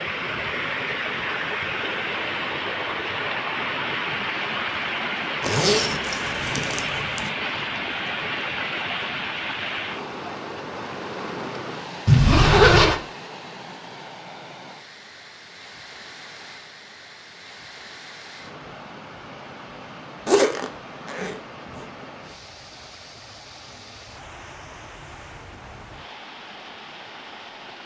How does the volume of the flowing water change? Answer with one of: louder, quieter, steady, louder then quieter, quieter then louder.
quieter.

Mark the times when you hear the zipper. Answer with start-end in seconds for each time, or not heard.
5.4-7.3, 12.1-13.0, 20.2-21.9.